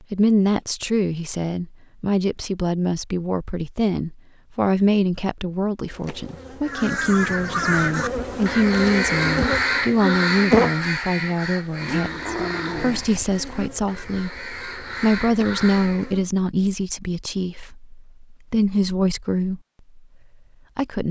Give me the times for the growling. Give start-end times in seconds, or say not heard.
11.8-13.3.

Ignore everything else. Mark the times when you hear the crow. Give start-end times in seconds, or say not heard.
6.6-16.1.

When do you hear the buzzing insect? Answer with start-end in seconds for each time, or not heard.
5.8-16.3.